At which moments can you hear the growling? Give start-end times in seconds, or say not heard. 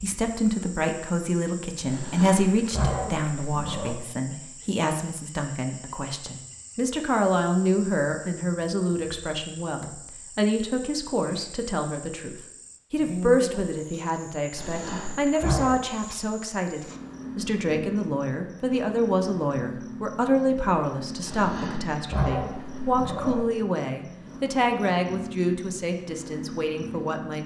1.9-4.0, 14.6-15.8, 21.2-23.4.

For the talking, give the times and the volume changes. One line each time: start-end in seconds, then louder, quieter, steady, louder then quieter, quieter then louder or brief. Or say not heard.
0.0-27.4 steady.